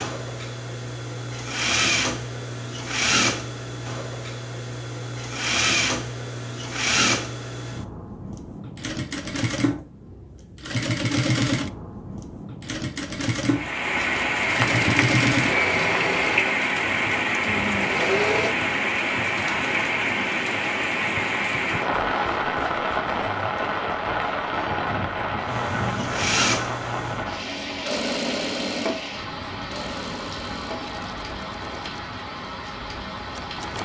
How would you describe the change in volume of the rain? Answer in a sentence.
The volume of the rain goes down.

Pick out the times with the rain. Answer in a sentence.
The rain can be heard from 13.4 to 33.8 s.